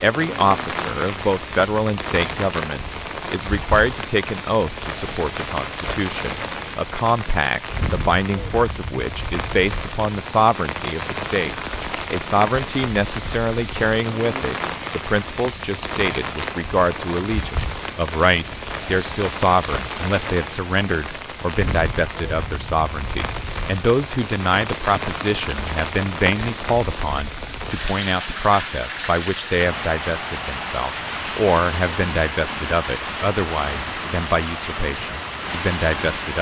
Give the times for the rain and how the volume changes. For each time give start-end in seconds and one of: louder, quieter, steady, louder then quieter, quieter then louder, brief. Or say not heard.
0.0-36.3 steady.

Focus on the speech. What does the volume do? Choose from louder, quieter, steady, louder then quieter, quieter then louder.
steady.